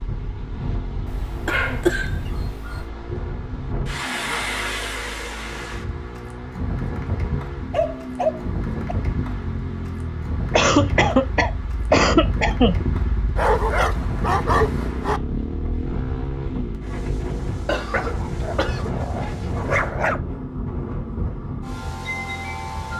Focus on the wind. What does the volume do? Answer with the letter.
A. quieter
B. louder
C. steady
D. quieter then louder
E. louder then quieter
C.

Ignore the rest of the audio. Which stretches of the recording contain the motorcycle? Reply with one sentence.
You can hear the motorcycle from 0.0 to 22.9 s.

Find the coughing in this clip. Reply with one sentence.
You can hear the coughing from 1.4 to 2.0 s, from 10.5 to 12.8 s and from 17.6 to 18.9 s.